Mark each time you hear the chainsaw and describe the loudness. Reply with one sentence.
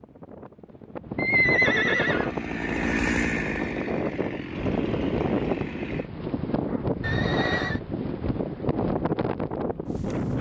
You can hear the chainsaw from 2.0 to 6.1 s, getting quieter.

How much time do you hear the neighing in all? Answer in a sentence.
The neighing can be heard for 2 seconds in total.